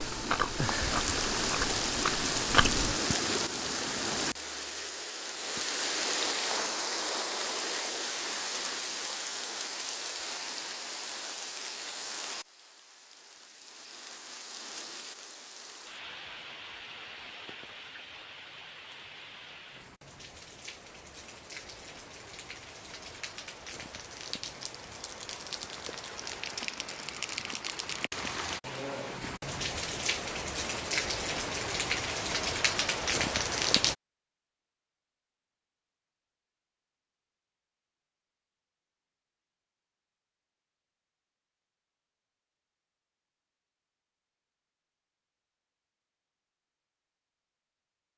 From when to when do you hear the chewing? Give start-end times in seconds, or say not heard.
0.0-3.0.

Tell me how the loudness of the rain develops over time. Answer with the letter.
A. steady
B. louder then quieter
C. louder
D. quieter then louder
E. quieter
D.